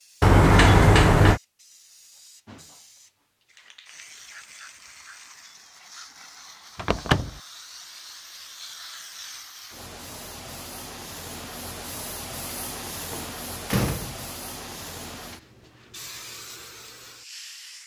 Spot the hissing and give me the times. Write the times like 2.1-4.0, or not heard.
0.0-17.8.